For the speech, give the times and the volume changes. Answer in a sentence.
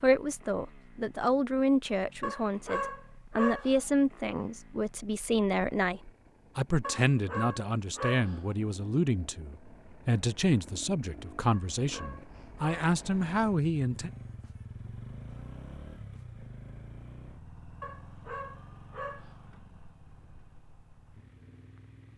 The speech can be heard from 0.0 to 14.1 s, at a steady volume.